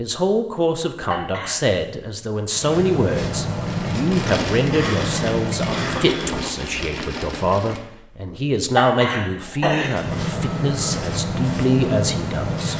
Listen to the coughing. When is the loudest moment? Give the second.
9 s.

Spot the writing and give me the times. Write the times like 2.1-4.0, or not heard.
2.5-6.2, 9.8-12.7.